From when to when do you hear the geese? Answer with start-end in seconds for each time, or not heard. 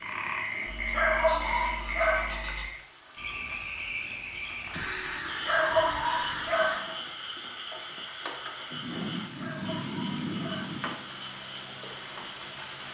0.7-2.6, 4.7-6.8, 8.7-11.0.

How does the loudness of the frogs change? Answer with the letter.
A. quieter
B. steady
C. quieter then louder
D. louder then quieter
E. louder
A.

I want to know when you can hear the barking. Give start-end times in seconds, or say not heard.
0.9-2.5, 5.5-7.0, 9.3-10.8.